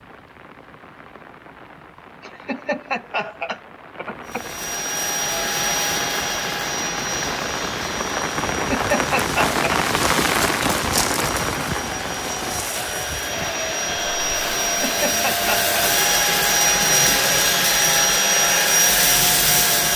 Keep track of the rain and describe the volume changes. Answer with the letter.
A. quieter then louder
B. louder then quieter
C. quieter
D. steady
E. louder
B.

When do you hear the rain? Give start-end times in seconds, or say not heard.
0.0-14.8.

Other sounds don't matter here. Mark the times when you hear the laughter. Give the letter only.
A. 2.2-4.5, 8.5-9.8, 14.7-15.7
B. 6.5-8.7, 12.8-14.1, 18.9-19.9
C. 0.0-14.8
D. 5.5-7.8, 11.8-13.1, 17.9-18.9
A.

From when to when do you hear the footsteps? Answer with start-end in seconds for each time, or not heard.
not heard.